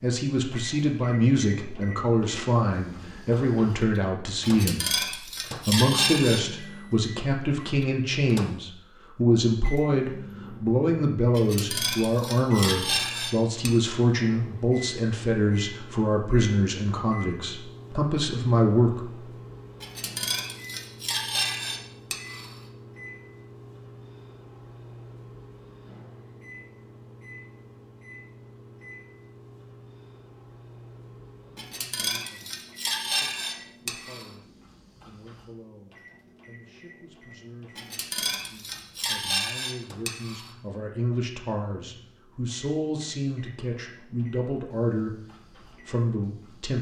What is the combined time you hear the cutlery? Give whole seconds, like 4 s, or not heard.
13 s.